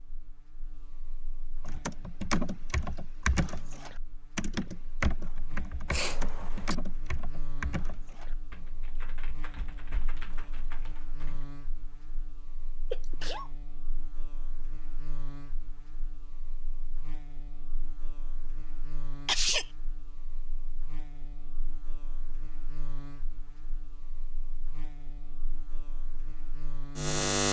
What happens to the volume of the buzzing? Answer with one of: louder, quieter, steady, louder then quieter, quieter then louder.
louder.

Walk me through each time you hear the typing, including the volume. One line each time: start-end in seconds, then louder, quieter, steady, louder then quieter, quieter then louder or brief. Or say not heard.
1.6-11.4 quieter.